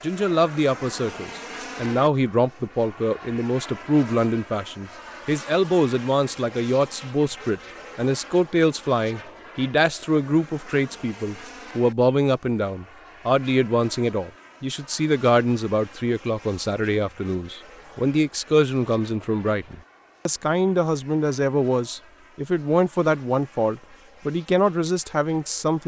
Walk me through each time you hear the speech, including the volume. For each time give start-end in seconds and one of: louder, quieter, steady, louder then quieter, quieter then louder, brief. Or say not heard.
0.0-25.8 steady.